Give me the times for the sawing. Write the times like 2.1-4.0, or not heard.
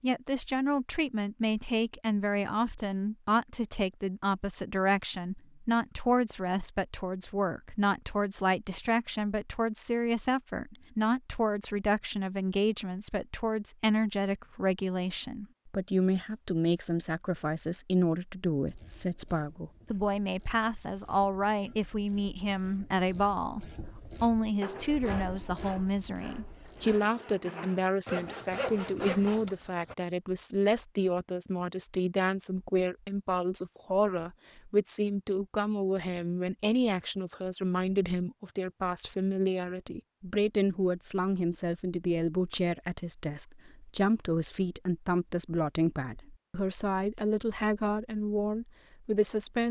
24.6-29.9.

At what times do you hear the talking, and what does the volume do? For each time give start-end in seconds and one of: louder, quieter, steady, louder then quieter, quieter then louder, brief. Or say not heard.
0.0-49.6 steady.